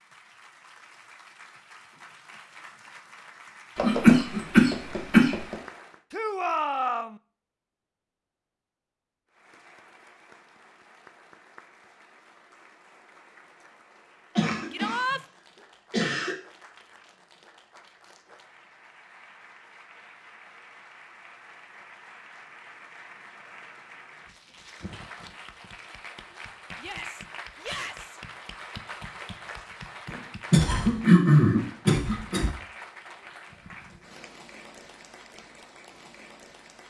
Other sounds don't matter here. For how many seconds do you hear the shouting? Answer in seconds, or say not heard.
3 s.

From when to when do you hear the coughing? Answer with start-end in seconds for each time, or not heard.
3.8-5.5, 14.3-15.2, 15.9-16.4, 30.1-32.5.